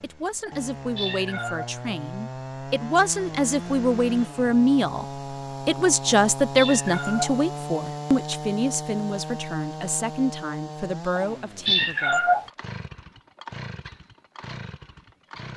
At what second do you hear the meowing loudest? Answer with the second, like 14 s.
12 s.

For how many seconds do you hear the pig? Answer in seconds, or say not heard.
not heard.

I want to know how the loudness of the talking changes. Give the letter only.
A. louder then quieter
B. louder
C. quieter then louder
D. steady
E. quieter
A.